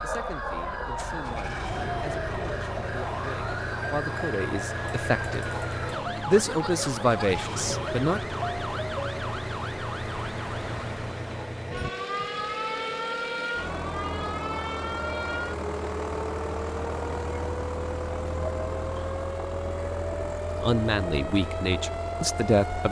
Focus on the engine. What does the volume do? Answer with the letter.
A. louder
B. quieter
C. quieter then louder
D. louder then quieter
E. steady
E.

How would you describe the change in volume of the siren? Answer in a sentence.
The volume of the siren stays about the same.